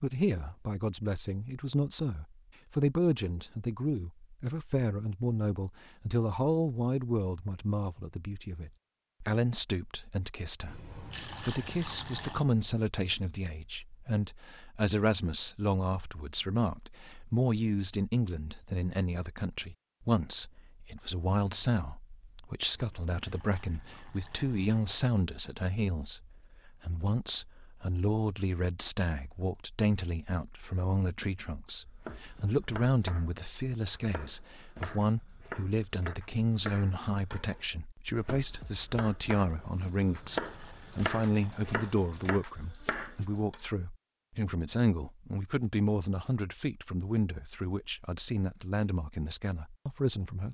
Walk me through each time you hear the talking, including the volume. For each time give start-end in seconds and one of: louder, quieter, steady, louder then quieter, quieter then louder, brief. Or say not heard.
0.0-50.4 steady.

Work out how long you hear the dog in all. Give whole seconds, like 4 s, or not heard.
not heard.